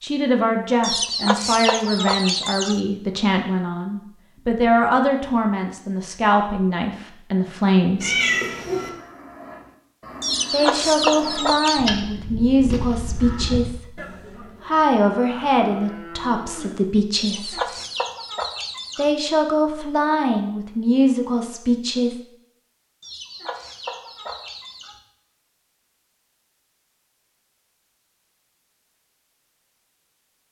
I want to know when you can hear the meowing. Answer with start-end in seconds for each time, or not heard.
8.0-8.9.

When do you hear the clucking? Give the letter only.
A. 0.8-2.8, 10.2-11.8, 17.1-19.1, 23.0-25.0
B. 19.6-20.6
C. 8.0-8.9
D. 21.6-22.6
A.